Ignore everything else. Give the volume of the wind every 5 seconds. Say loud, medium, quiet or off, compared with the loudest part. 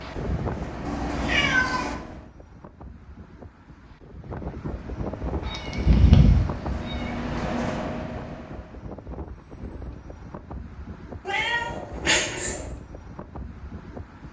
loud, loud, medium.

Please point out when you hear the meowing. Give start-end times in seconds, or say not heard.
0.8-1.9, 5.5-7.1, 11.2-12.7.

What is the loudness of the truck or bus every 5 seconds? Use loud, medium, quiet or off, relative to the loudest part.
loud, loud, off.